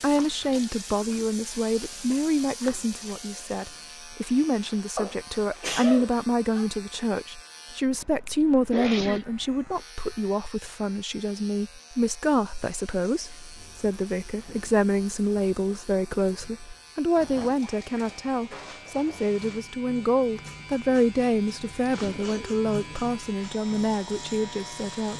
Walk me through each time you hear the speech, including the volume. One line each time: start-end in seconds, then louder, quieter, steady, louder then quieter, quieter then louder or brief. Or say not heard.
0.0-25.1 steady.